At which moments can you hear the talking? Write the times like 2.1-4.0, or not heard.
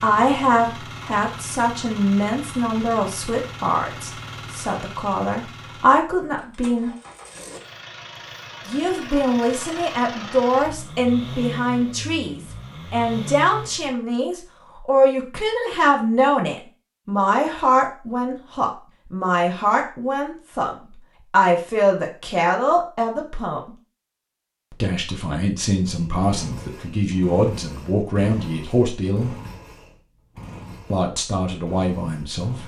0.0-6.9, 8.7-23.7, 24.7-29.4, 30.9-32.6.